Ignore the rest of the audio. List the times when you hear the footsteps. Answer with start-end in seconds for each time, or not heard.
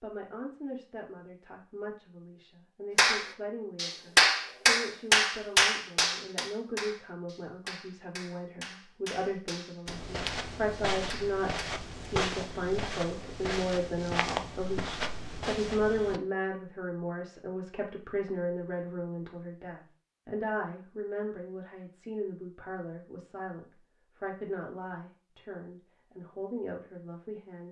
9.8-16.2.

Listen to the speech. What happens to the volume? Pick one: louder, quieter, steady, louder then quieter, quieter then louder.
louder then quieter.